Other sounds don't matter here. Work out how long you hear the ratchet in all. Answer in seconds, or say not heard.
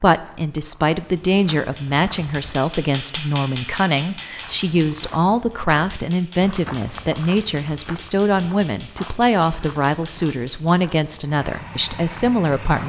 not heard.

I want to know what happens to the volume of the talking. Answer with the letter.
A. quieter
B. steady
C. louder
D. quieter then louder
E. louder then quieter
B.